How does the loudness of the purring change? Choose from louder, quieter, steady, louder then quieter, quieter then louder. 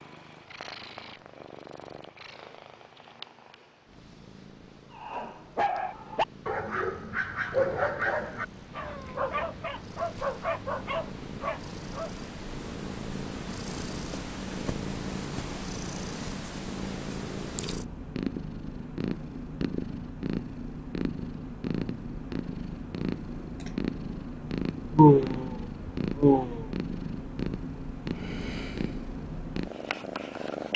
louder.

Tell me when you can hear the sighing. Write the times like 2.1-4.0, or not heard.
24.9-25.5, 26.2-26.6.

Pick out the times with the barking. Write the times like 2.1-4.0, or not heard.
4.9-12.2.